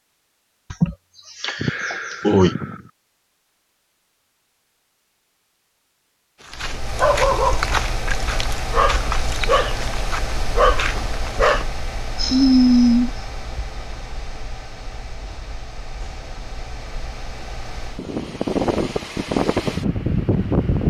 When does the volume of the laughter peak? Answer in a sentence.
The loudest moment of the laughter is at 2 seconds.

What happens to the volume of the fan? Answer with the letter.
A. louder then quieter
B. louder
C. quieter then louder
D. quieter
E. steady
C.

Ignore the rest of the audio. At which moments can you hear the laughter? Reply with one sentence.
The laughter can be heard from 0.7 to 2.5 s.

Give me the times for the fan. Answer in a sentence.
You can hear the fan from 6.5 to 20.8 s.